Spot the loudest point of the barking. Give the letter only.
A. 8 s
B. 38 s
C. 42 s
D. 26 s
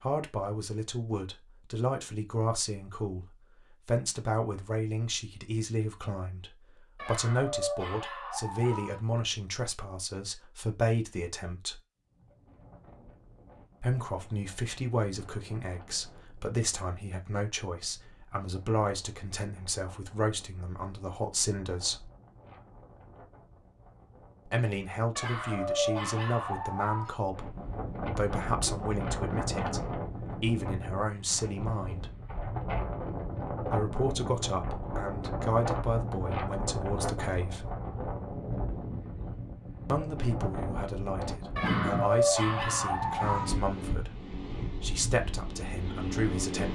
C.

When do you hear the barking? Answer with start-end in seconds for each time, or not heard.
7.0-9.0, 25.1-27.1, 41.5-43.5.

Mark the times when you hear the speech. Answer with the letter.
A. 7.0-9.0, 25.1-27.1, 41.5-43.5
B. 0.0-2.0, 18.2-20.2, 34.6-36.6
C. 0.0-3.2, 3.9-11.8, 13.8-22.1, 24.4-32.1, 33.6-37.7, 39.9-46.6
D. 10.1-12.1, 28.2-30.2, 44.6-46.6
C.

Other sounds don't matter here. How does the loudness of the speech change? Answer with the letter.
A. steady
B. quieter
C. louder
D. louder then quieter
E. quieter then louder
A.